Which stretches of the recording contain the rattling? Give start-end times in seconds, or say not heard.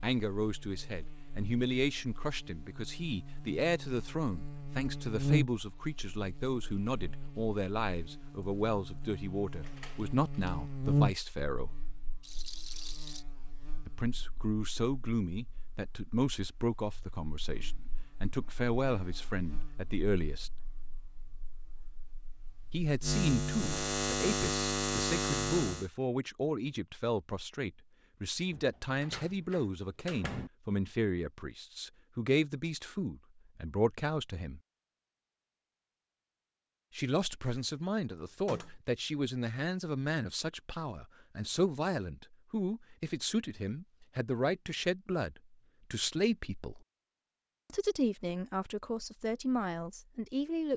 12.2-13.2.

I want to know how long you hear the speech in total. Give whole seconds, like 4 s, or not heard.
43 s.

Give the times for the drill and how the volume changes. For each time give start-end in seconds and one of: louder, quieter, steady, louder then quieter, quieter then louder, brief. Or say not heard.
not heard.